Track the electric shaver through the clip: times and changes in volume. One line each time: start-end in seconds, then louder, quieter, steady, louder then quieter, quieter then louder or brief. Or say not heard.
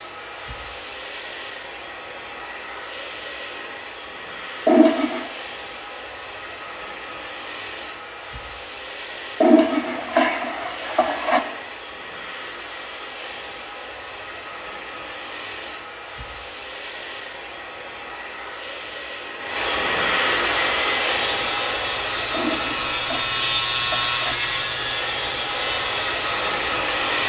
20.6-27.2 louder then quieter.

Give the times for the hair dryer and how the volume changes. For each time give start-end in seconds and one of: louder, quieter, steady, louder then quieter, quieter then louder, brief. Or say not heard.
0.0-27.2 louder.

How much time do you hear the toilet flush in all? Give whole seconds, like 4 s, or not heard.
5 s.